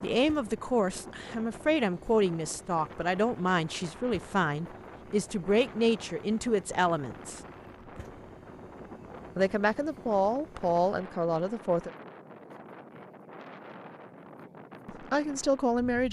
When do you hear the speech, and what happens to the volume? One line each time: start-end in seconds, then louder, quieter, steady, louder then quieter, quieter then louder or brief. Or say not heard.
0.0-7.4 steady
9.3-11.9 brief
14.8-16.0 brief.